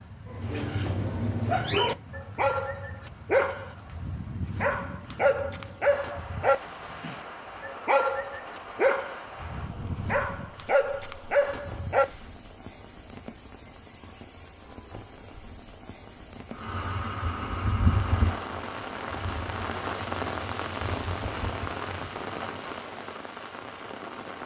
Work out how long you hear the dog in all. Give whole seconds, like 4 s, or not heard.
12 s.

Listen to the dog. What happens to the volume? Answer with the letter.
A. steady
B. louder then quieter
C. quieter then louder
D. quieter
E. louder
A.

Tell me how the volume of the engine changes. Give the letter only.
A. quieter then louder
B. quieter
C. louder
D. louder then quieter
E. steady
B.